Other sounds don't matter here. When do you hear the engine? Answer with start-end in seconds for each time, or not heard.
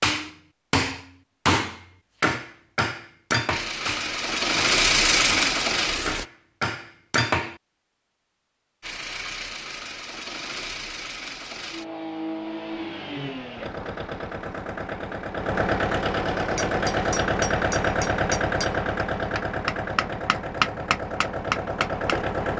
3.5-6.2, 8.8-22.5.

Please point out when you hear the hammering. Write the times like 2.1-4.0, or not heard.
0.0-7.5, 16.5-22.2.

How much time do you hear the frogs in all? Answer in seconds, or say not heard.
not heard.